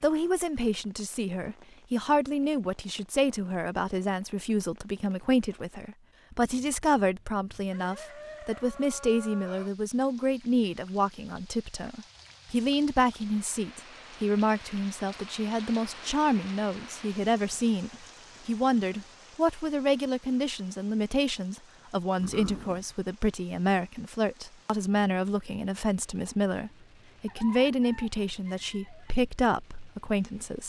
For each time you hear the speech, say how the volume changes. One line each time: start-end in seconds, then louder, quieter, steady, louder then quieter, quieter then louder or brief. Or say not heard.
0.0-30.6 steady.